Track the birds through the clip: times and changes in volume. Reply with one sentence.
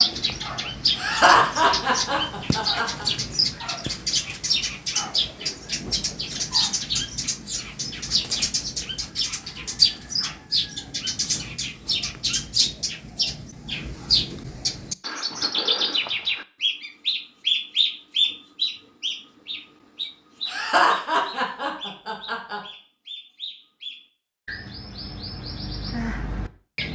The birds can be heard from 0.0 to 26.9 s, getting quieter.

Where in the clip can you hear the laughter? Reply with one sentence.
You can hear the laughter from 0.9 to 3.0 s and from 20.4 to 22.6 s.